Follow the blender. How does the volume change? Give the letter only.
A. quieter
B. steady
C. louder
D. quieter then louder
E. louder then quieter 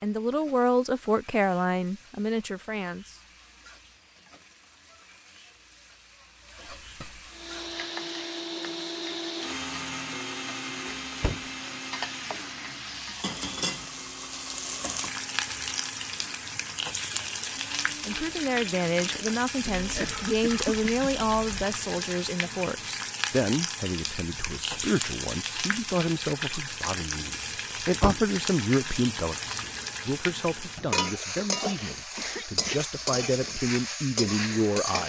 A.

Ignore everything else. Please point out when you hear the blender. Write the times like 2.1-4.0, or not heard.
7.3-19.4.